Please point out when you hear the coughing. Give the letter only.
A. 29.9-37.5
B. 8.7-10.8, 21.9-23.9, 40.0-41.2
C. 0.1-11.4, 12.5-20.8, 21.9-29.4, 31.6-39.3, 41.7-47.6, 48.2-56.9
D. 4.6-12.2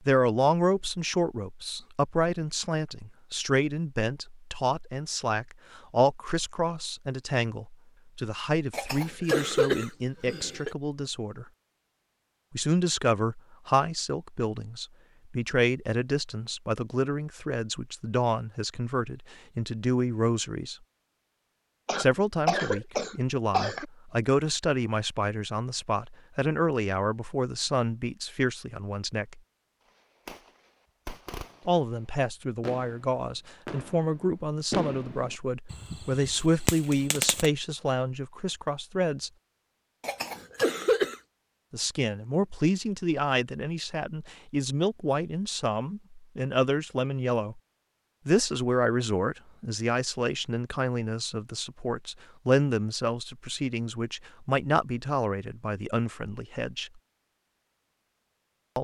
B.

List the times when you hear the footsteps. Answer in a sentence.
The footsteps can't be heard in this clip.